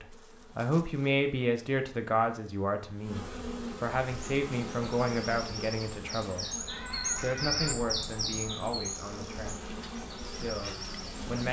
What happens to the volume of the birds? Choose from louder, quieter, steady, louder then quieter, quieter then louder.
louder then quieter.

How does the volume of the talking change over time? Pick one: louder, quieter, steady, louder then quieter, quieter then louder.
quieter.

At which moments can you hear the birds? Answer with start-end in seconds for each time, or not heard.
4.0-11.4.